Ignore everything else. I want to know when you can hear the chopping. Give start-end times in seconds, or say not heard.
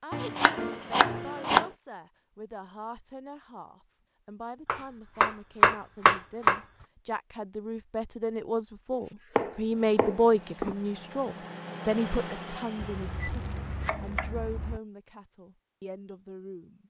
0.1-1.7, 4.7-6.6, 8.9-10.8, 12.8-14.8.